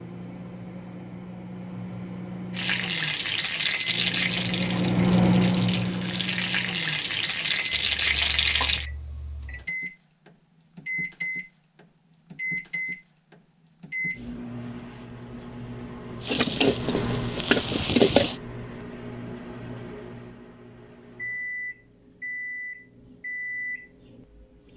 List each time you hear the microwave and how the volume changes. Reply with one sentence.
The microwave can be heard from 0.0 to 24.7 s, getting quieter.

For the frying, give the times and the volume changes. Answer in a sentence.
The frying can be heard from 2.5 to 8.8 s, getting quieter then louder; and briefly from 16.2 to 18.4 s.